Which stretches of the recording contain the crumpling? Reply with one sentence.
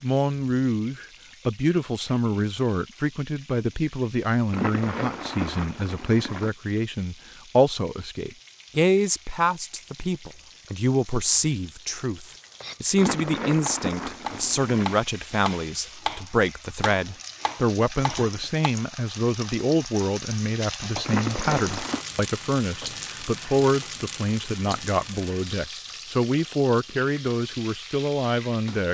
You can hear the crumpling from 4.5 to 6.5 s, from 12.9 to 14.9 s and from 21.0 to 22.1 s.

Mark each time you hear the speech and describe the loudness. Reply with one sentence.
The speech can be heard from 0.0 to 28.9 s, at a steady volume.